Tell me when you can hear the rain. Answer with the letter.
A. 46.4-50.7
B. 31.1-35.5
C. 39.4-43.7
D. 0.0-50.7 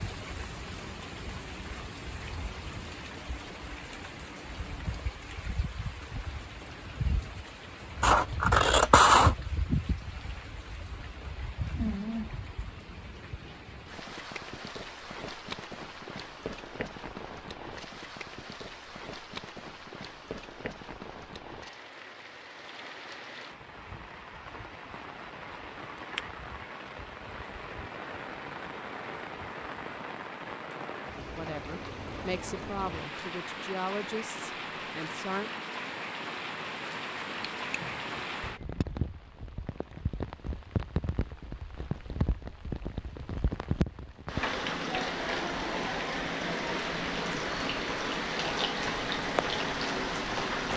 D.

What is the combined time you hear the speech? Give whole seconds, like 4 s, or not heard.
4 s.